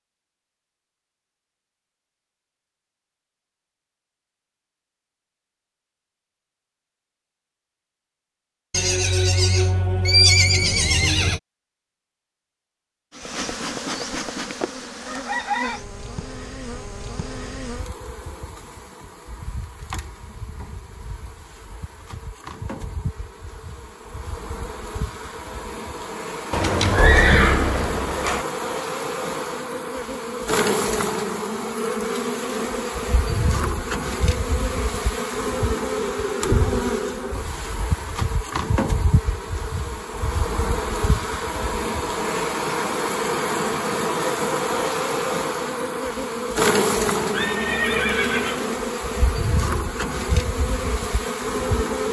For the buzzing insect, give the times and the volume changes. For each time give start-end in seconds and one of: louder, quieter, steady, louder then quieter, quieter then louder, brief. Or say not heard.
13.1-52.0 louder.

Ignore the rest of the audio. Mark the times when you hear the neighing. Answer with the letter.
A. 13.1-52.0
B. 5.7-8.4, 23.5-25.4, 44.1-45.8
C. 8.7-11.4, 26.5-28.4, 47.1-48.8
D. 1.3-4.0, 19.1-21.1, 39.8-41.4
C.